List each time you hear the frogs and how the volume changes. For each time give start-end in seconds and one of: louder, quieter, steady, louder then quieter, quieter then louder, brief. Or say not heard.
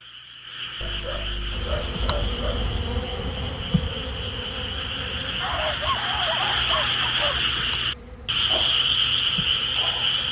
0.0-10.2 louder.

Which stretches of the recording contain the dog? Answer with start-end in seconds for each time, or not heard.
0.8-2.8, 5.4-7.4.